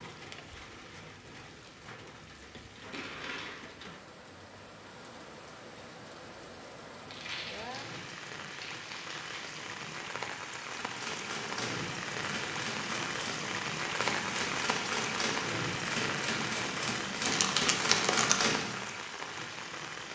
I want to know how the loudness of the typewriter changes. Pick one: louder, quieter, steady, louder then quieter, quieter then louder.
louder.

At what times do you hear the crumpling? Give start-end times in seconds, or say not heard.
2.9-3.6, 7.0-9.6, 17.2-18.5.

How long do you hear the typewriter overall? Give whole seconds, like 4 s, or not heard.
8 s.